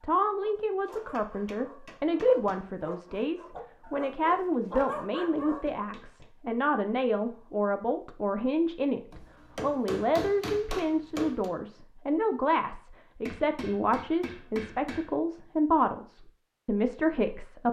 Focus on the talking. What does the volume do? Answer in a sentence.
The loudness of the talking stays about the same.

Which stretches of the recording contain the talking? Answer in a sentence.
The talking can be heard from 0.0 to 17.6 s.